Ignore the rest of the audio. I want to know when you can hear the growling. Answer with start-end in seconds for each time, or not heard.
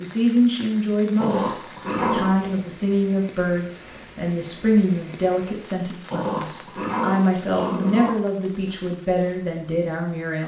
1.1-2.6, 6.1-8.1.